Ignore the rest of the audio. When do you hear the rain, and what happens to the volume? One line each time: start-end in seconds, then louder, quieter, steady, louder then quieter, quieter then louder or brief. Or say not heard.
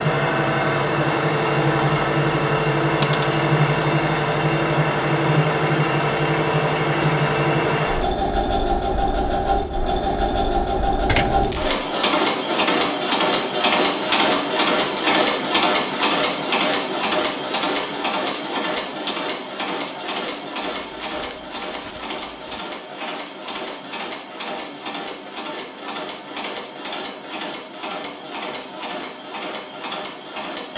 not heard.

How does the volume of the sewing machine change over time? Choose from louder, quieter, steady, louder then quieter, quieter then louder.
quieter.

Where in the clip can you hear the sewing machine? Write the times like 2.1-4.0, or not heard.
0.0-30.7.